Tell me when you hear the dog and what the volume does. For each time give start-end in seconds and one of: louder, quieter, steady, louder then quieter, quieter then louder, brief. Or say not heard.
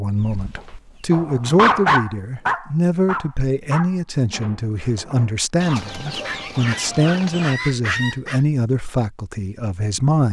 0.6-8.4 quieter then louder.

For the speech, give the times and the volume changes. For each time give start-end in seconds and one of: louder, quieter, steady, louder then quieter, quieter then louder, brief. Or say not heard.
0.0-10.2 steady.